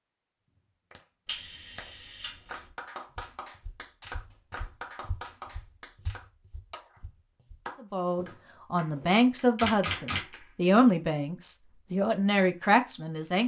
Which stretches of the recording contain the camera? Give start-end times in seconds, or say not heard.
1.2-2.7, 9.6-10.3.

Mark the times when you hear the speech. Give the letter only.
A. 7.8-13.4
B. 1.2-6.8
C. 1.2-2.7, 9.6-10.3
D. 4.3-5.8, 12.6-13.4
A.